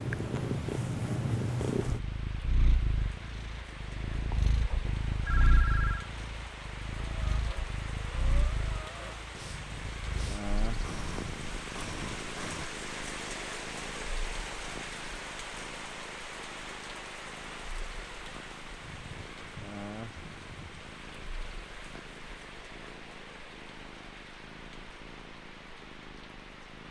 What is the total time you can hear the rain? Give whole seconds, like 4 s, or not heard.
27 s.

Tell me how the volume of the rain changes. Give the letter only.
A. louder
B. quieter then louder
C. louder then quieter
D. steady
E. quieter
C.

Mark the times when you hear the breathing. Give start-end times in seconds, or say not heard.
7.1-12.7.